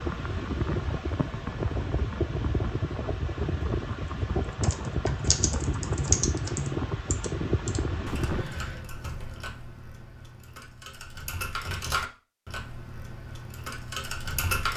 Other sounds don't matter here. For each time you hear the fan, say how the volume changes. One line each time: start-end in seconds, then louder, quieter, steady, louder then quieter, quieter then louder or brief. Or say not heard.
0.0-8.4 steady.